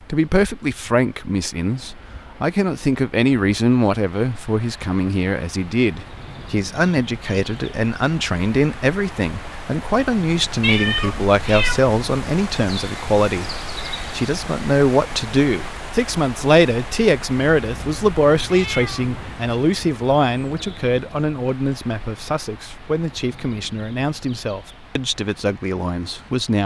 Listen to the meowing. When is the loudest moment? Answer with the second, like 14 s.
11 s.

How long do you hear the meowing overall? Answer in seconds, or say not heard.
3 s.